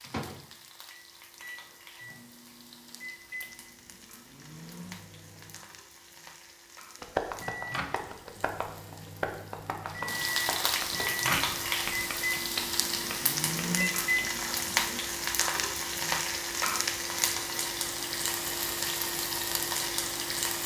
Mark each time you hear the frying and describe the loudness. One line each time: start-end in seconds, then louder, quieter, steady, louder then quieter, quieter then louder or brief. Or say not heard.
0.0-20.6 louder.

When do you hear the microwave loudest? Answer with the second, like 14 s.
14 s.